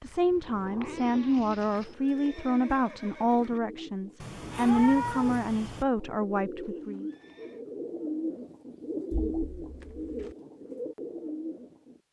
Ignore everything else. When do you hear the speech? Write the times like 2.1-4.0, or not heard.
0.0-7.0.